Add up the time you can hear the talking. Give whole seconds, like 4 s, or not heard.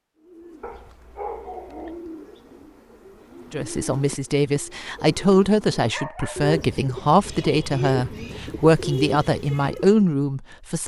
7 s.